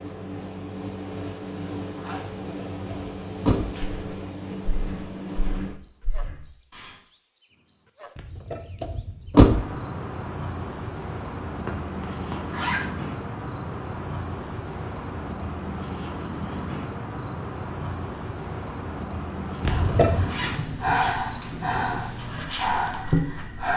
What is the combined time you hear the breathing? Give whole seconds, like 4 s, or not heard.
7 s.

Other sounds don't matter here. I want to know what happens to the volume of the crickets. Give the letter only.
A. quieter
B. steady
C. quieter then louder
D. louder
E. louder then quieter
B.